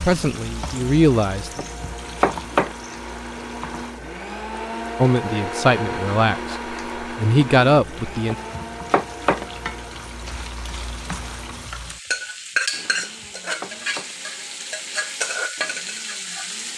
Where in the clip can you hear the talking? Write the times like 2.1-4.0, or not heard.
0.0-1.6, 5.0-8.3.